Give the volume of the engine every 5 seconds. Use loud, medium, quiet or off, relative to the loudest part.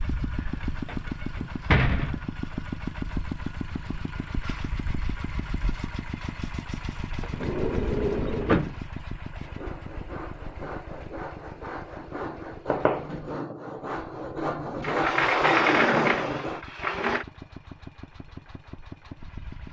loud, loud, medium, medium.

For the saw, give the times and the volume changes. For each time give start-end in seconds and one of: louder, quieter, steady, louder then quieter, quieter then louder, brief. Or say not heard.
9.3-16.6 louder.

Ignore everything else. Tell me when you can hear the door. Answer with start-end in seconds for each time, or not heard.
0.3-2.3, 7.2-8.8, 14.8-17.2.